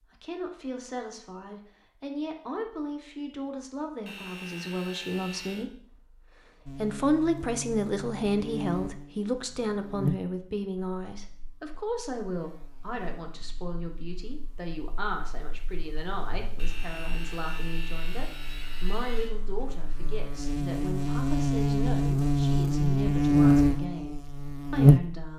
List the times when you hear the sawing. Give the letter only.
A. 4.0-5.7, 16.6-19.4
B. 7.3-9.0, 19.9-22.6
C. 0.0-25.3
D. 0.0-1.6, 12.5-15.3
A.